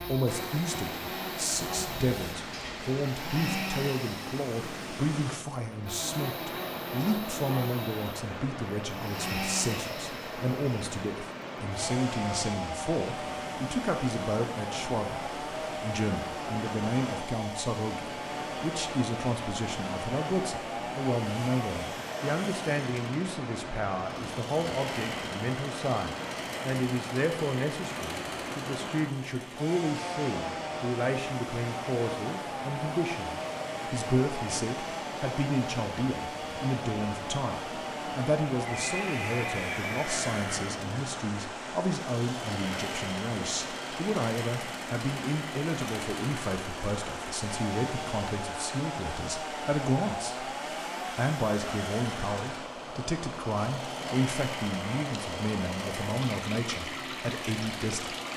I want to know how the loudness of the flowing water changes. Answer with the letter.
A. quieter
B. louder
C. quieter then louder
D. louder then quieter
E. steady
E.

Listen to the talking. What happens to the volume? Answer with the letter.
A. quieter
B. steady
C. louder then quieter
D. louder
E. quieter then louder
B.